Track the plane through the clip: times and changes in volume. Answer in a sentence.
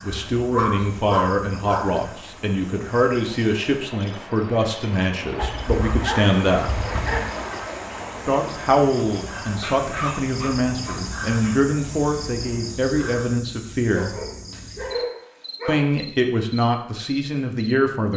You can't hear the plane here.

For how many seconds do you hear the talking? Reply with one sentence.
You can hear the talking for 15 seconds altogether.